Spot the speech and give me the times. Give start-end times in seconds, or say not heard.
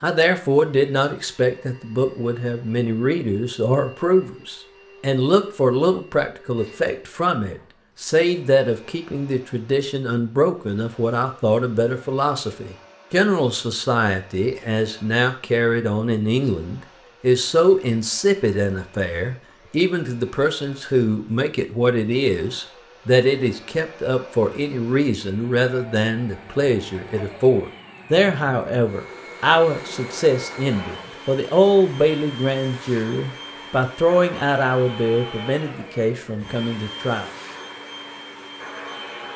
0.0-37.3.